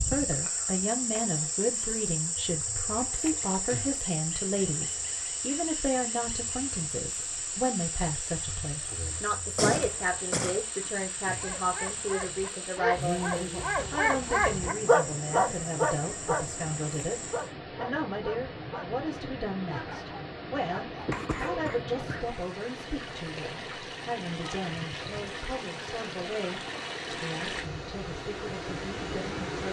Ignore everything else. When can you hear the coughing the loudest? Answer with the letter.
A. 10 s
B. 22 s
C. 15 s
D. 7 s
A.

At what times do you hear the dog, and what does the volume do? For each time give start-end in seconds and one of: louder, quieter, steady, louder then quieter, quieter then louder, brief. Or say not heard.
11.2-16.4 louder
17.3-18.9 brief
19.6-21.7 brief.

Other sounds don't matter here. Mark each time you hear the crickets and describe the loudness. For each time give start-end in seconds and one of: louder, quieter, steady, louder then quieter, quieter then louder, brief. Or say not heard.
0.0-17.6 quieter.